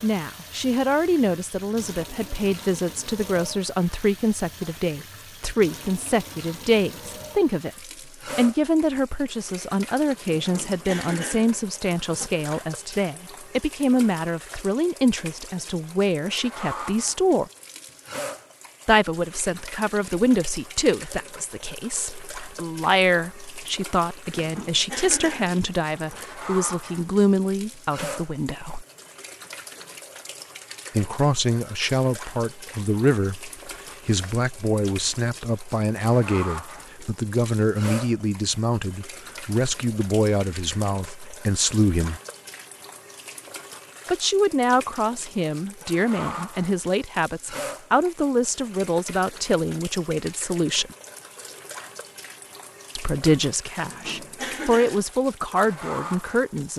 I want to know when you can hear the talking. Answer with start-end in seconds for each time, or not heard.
0.0-7.7, 8.3-17.4, 18.9-28.9, 30.9-42.2, 44.1-51.0, 53.0-56.7.